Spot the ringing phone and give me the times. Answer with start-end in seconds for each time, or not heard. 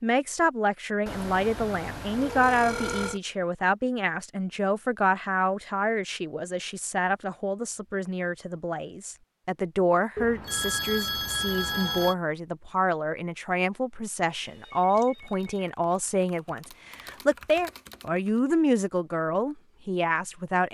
1.1-3.2, 10.2-12.2, 14.4-15.6.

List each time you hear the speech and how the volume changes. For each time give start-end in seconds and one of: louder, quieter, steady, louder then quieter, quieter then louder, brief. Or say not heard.
0.0-20.6 steady.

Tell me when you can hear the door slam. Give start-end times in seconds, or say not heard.
not heard.